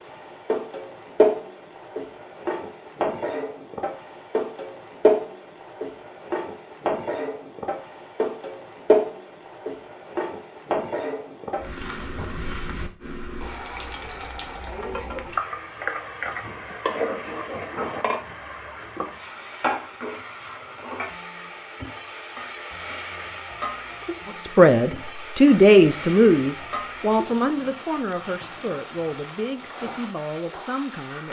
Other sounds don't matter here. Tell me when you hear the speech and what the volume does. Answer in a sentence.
The speech can be heard from 24.4 to 31.2 s, getting quieter.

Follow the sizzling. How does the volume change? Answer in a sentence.
The volume of the sizzling goes down.